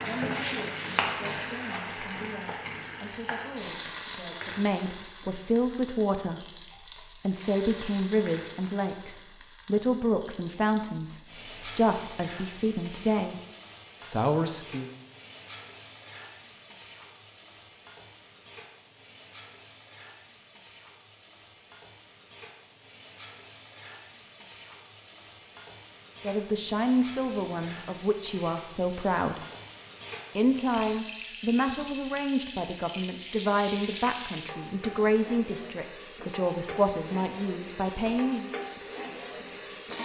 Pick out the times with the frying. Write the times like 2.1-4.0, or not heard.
0.0-39.9.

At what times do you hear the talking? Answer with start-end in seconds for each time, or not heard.
0.0-13.3, 14.0-14.9, 26.2-29.4, 30.4-38.5.